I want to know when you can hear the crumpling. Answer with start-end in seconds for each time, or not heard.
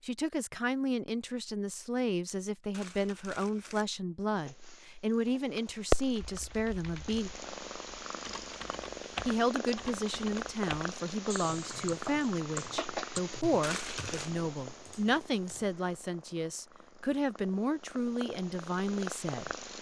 2.7-3.9, 13.6-14.3.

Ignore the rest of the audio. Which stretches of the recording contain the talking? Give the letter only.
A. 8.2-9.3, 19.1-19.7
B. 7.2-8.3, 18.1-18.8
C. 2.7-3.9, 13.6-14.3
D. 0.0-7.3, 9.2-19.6
D.